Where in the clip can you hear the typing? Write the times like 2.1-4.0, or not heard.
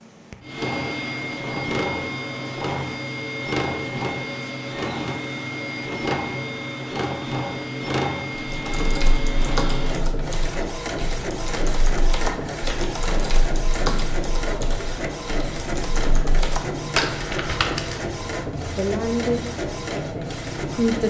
8.3-18.1.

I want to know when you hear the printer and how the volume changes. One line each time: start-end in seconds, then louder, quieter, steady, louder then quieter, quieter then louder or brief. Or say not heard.
0.0-21.0 steady.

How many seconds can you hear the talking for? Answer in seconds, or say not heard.
2 s.